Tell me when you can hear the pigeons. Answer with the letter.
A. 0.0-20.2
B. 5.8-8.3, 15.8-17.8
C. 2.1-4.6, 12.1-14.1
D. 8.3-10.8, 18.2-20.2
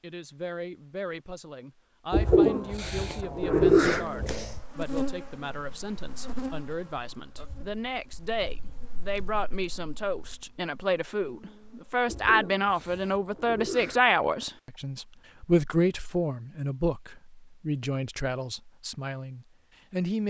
C.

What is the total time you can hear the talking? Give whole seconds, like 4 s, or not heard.
20 s.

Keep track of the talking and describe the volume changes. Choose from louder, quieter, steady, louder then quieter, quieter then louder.
louder then quieter.